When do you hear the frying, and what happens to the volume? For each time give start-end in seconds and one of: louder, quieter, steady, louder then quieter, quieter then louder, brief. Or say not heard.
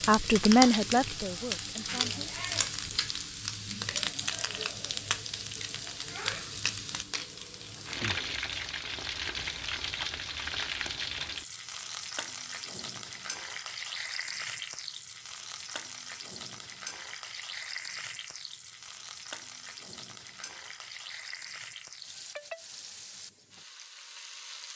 0.0-24.7 quieter.